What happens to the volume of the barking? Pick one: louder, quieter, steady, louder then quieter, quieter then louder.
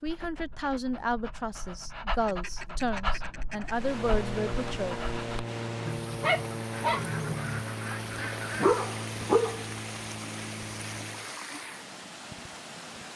louder.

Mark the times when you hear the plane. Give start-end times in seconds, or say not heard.
3.8-11.3.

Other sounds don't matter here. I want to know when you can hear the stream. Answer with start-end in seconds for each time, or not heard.
3.6-13.1.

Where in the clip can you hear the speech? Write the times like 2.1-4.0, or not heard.
0.0-5.0.